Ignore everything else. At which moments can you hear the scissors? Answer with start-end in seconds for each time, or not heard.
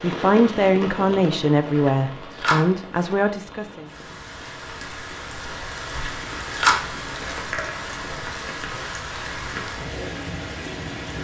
1.8-3.1, 5.9-8.0.